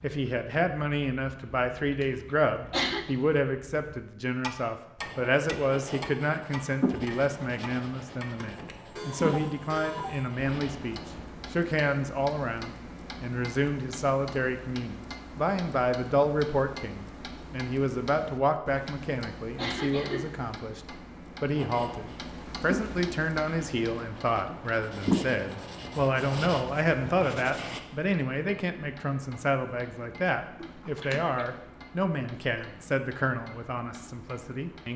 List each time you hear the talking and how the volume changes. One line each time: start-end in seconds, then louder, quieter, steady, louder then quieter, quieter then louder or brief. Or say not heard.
0.0-34.9 steady.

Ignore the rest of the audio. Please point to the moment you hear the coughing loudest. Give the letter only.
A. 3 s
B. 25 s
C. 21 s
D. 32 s
A.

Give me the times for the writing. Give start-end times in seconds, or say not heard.
5.0-11.2, 21.5-27.8.